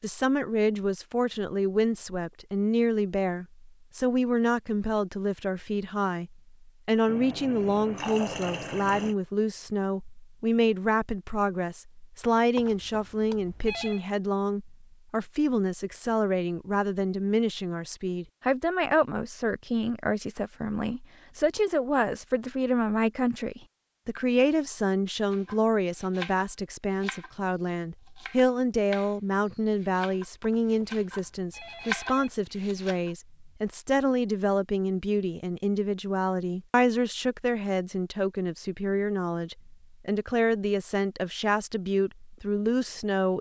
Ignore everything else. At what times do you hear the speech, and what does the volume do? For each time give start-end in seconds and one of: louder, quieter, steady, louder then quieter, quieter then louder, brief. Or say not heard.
0.0-43.3 steady.